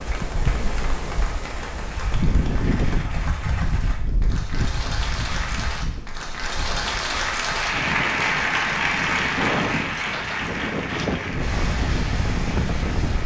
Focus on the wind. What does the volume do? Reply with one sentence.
The loudness of the wind goes down, then up.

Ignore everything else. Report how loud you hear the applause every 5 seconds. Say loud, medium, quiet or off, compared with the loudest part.
medium, loud, medium.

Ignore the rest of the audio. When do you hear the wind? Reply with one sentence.
The wind can be heard from 0.0 to 13.2 s.